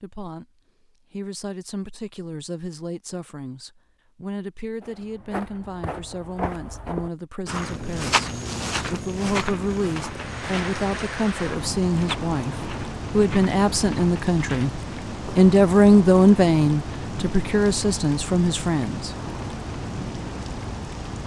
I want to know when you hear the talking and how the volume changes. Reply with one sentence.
The talking can be heard briefly from 0.0 to 0.5 s; and from 1.1 to 19.1 s, getting louder.